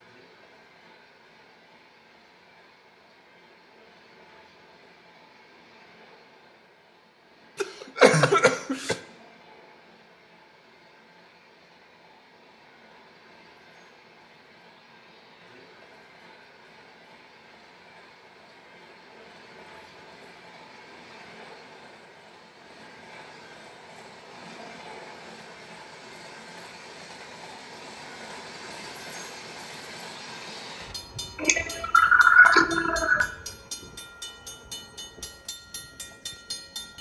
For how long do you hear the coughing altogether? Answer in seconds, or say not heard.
3 s.